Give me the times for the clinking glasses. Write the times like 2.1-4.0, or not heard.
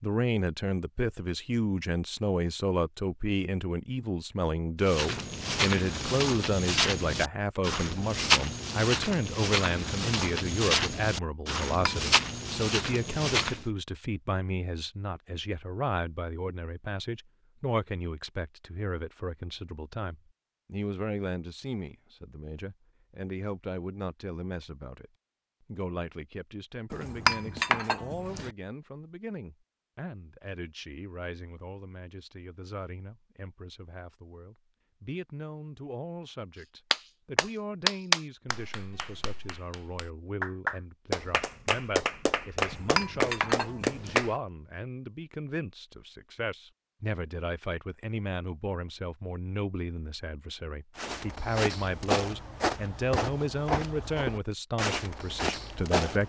11.7-12.1, 26.9-28.5, 42.6-44.2.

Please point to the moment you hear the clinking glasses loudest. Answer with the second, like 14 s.
27 s.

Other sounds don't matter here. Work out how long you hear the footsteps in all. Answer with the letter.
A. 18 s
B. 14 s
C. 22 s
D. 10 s
B.